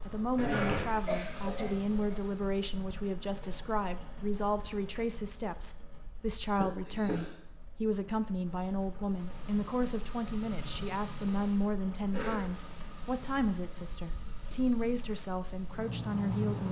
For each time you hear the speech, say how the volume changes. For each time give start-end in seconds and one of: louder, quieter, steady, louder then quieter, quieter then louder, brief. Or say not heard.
0.1-16.6 steady.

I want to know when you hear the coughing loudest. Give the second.
1 s.